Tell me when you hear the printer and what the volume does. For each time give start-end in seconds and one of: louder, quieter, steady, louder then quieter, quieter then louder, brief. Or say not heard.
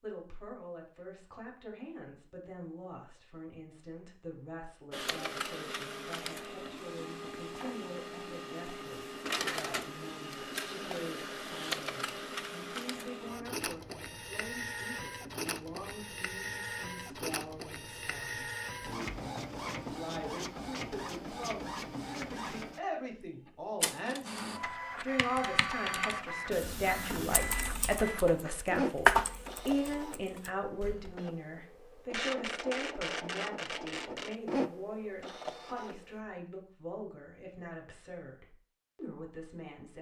4.9-36.2 steady.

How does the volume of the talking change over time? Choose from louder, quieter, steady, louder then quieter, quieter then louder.
louder then quieter.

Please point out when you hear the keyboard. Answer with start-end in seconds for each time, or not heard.
25.1-31.1.